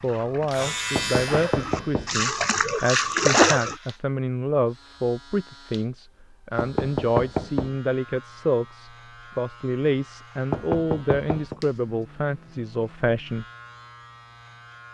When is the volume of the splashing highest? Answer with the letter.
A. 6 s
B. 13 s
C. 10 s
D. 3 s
D.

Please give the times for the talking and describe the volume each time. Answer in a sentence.
The talking can be heard from 0.0 to 13.4 s, at a steady volume.